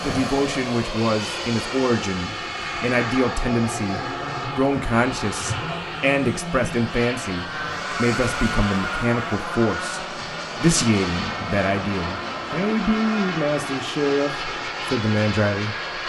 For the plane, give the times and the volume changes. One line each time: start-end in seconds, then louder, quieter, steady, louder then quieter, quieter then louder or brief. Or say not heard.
0.0-16.0 steady.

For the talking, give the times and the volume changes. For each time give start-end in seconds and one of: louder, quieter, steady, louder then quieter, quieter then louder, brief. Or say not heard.
0.0-15.8 steady.